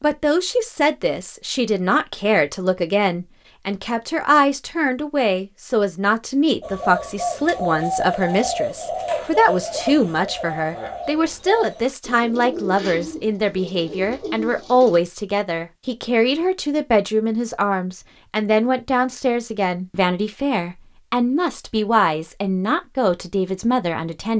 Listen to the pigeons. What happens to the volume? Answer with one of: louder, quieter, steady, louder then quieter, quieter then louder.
quieter.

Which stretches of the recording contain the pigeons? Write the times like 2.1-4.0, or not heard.
6.6-15.0.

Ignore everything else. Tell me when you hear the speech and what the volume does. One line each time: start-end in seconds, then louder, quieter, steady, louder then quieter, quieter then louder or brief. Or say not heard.
0.0-24.3 steady.